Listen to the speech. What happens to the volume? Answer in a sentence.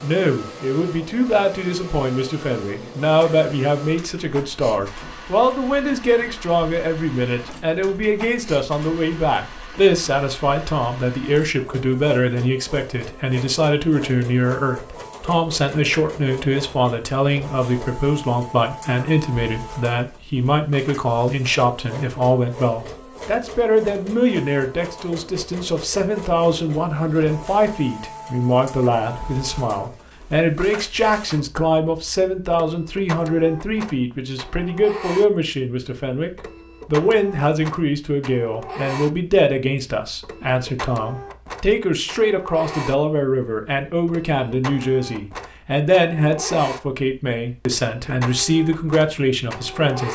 The volume of the speech stays about the same.